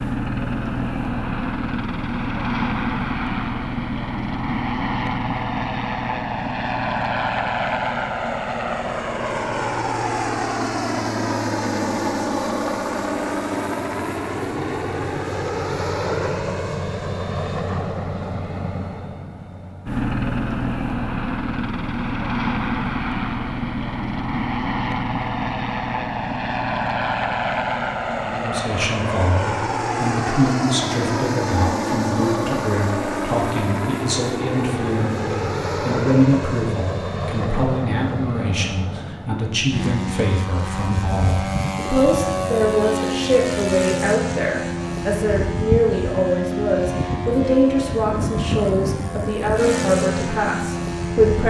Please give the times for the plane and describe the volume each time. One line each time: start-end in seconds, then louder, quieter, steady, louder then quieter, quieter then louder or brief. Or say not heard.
0.0-51.4 steady.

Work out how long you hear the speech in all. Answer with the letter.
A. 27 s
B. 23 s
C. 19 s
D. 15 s
B.